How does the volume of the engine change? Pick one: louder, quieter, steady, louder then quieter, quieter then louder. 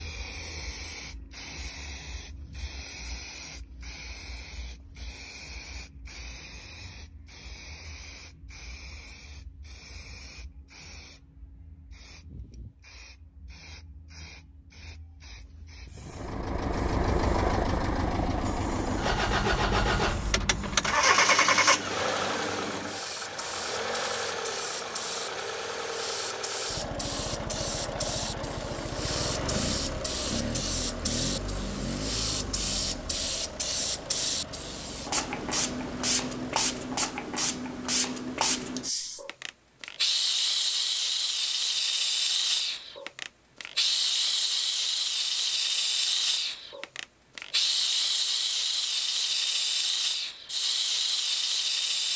quieter.